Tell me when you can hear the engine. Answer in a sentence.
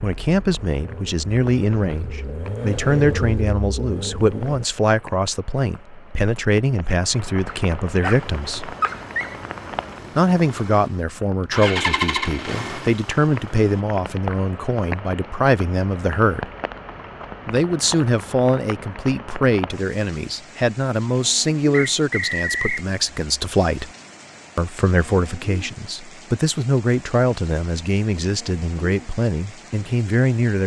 You can hear the engine from 0.2 to 4.7 s and from 8.1 to 13.8 s.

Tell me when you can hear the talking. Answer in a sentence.
The talking can be heard from 0.0 to 8.8 s, from 10.2 to 16.5 s, from 17.4 to 23.9 s and from 24.6 to 30.6 s.